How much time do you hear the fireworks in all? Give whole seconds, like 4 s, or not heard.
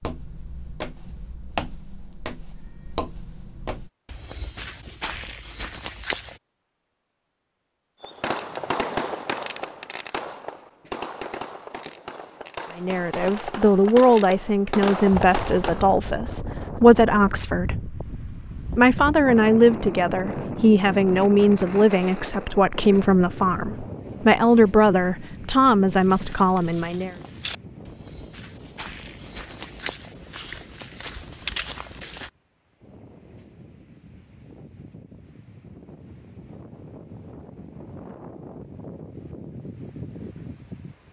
8 s.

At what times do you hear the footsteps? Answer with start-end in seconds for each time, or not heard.
0.0-6.4, 25.9-32.3.